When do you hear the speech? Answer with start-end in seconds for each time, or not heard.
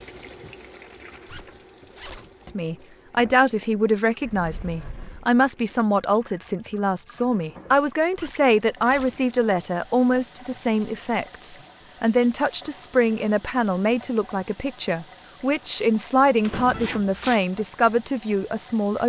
2.5-19.0.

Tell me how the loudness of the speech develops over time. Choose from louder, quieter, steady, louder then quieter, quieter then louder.
steady.